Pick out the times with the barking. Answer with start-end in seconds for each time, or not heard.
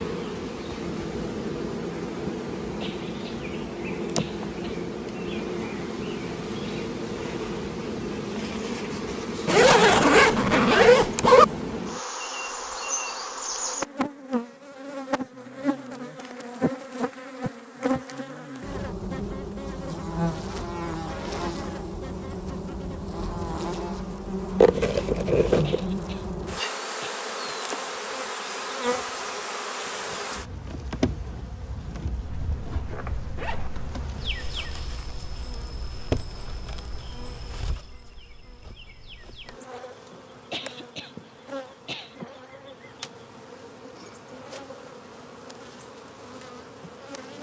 not heard.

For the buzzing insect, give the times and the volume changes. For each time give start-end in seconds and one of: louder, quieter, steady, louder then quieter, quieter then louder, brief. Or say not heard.
0.0-47.3 quieter.